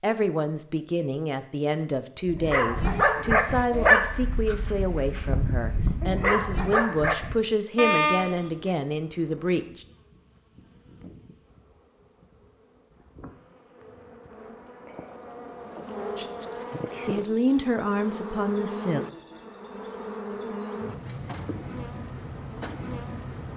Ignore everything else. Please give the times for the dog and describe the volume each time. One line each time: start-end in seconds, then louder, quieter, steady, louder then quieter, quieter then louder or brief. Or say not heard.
2.2-8.8 quieter then louder.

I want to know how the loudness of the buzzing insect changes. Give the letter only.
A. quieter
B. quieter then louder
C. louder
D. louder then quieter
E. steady
C.